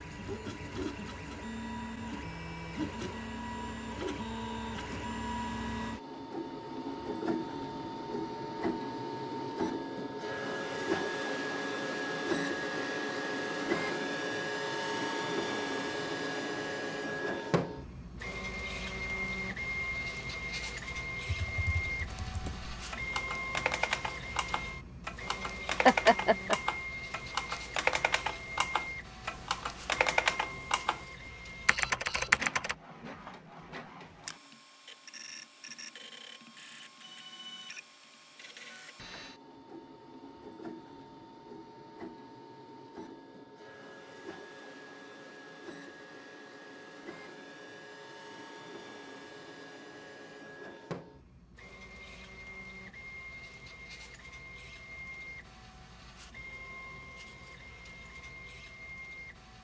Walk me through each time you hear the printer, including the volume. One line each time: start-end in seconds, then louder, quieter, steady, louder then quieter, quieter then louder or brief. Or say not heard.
0.0-59.5 quieter.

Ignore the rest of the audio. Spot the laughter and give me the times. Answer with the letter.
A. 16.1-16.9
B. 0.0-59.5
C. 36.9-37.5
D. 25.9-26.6
D.